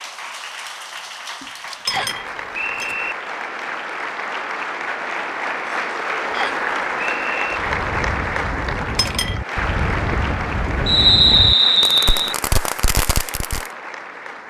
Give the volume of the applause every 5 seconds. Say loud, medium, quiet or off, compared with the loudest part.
medium, loud, medium.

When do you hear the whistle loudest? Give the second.
11 s.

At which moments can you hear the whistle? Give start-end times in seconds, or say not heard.
1.9-3.1, 6.3-7.6, 10.8-12.3.